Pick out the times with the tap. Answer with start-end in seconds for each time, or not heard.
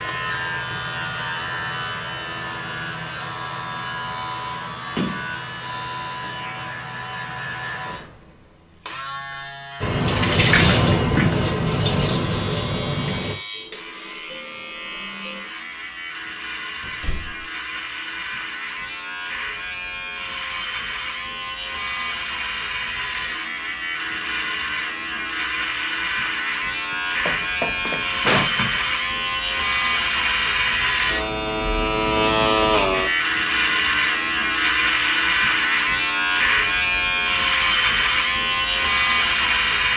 9.8-13.3.